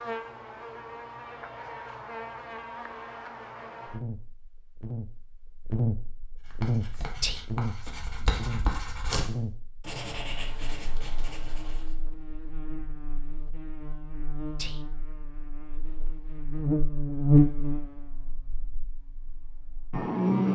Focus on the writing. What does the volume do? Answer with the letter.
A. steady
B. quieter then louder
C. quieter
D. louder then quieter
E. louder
D.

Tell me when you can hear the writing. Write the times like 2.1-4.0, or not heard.
6.4-11.9.